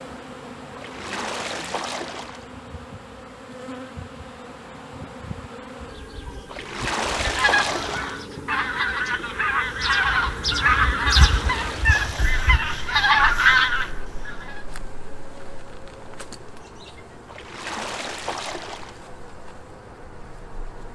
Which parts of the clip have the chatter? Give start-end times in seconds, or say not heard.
not heard.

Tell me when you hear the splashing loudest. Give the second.
7 s.